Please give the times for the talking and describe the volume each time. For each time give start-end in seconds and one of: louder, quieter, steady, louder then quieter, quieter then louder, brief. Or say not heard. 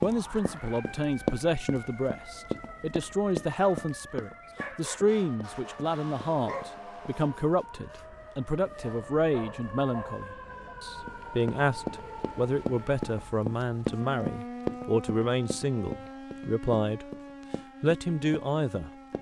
0.0-17.1 steady
17.8-18.9 brief.